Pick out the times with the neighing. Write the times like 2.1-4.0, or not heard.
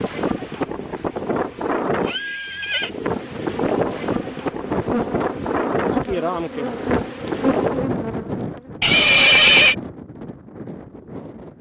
1.9-2.9, 8.8-9.8.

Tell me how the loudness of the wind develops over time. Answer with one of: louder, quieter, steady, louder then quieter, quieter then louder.
quieter.